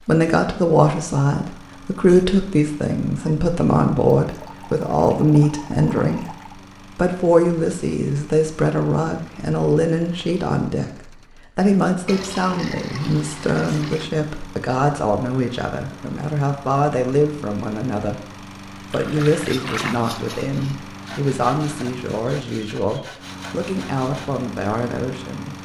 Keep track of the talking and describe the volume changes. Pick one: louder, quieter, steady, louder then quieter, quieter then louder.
quieter.